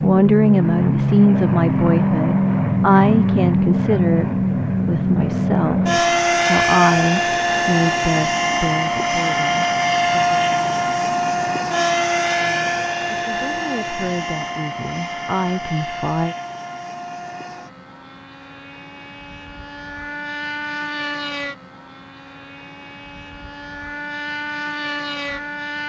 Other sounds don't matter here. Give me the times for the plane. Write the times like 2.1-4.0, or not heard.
0.0-25.8.